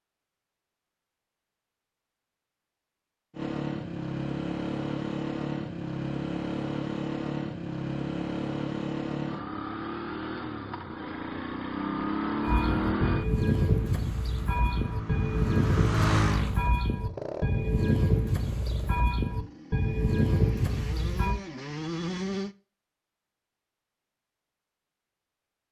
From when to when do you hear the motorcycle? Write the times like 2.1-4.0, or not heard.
3.4-22.6.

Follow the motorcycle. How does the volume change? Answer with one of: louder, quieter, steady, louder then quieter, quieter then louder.
quieter.